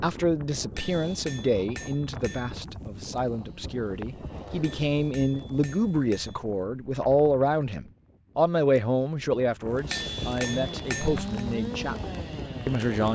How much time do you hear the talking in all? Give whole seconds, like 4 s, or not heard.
13 s.